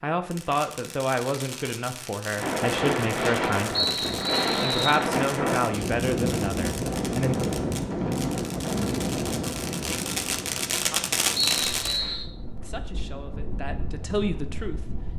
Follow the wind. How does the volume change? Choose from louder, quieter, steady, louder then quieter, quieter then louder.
quieter.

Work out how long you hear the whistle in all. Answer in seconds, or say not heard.
2 s.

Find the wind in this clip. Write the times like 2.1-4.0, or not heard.
2.4-15.1.